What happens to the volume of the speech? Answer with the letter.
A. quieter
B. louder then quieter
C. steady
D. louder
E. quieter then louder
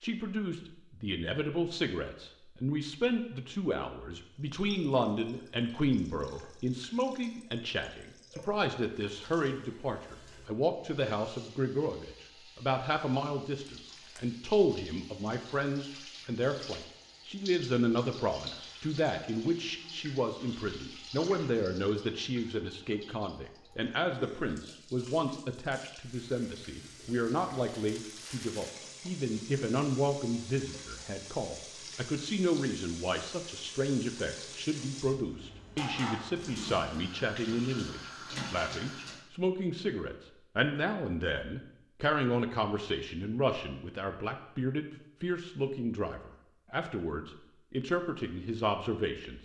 C.